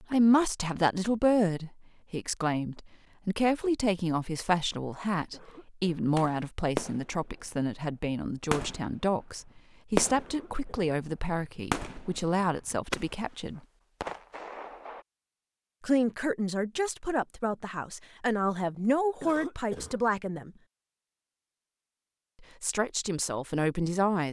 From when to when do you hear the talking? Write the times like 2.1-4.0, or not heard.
0.0-13.6, 15.8-20.5, 22.4-24.2.